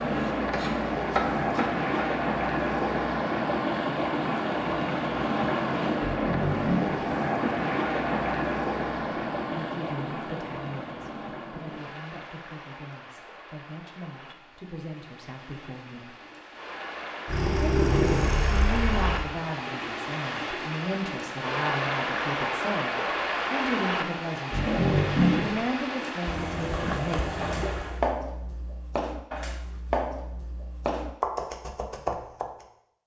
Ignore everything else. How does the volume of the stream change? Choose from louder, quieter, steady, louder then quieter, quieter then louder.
quieter then louder.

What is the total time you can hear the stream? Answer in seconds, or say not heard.
28 s.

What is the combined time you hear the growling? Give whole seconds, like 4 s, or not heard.
4 s.